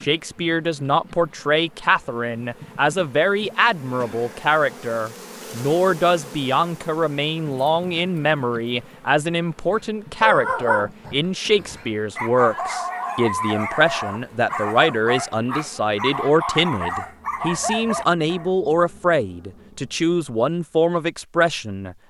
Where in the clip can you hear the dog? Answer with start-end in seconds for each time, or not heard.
9.7-18.5.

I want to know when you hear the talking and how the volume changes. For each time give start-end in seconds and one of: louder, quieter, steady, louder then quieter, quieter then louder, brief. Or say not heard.
0.0-21.9 steady.